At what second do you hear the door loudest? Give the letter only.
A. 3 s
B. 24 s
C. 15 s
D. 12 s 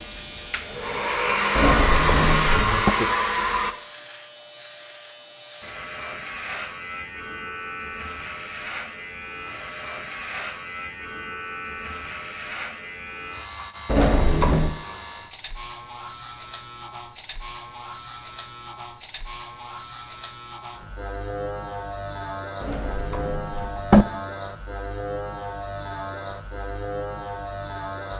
B.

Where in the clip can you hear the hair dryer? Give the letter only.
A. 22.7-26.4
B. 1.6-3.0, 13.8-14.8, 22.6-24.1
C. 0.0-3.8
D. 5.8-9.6
C.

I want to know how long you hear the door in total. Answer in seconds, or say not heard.
4 s.